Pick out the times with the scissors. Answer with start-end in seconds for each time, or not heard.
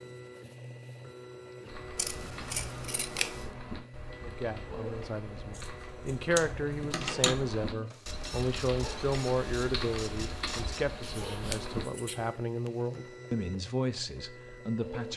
1.9-3.5, 5.5-7.4, 11.0-12.3.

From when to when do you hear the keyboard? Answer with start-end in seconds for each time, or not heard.
1.6-11.8.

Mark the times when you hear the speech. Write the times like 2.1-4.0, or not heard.
4.2-15.1.